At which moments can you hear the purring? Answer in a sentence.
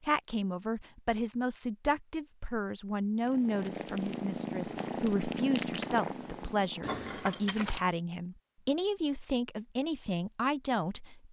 You can hear the purring from 3.2 to 7.0 s.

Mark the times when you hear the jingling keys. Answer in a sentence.
The jingling keys can be heard from 6.8 to 7.8 s.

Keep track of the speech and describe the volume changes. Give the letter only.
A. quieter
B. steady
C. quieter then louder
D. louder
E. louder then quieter
B.